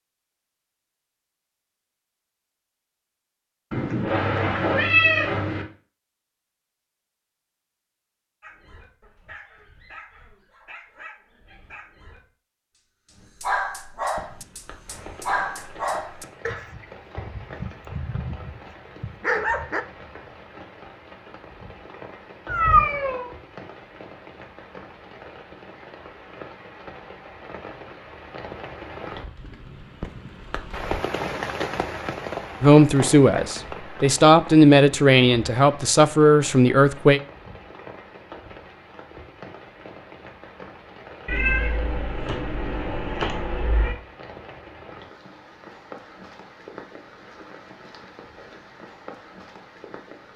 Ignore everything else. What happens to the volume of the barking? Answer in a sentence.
The loudness of the barking goes up.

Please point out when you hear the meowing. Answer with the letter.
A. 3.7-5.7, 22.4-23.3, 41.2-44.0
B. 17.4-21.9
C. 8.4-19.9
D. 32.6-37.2
A.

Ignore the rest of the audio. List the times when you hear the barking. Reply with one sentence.
The barking can be heard from 8.4 to 19.9 s.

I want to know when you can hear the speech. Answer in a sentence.
The speech can be heard from 32.6 to 37.2 s.